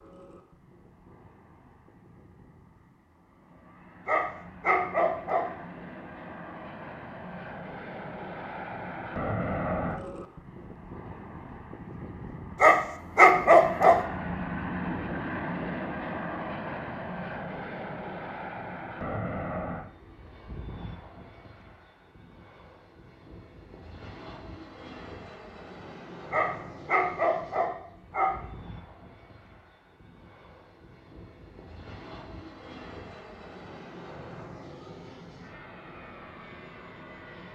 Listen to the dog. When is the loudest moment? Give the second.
13 s.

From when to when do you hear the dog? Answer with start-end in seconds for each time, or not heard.
4.0-5.5, 12.6-14.0, 26.3-28.4.